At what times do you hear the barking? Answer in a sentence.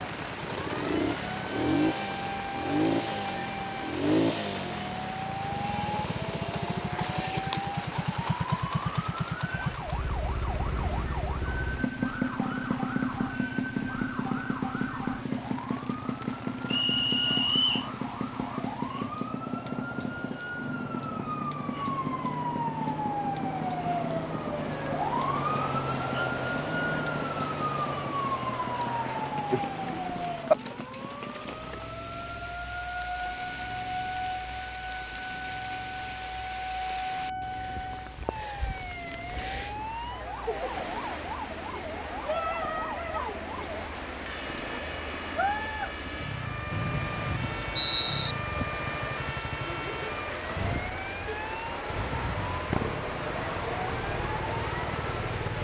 The barking can't be heard in this clip.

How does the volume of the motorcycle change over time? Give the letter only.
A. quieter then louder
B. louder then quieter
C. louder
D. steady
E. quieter
A.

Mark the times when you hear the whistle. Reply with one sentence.
You can hear the whistle from 16.7 to 17.9 s and from 46.7 to 48.4 s.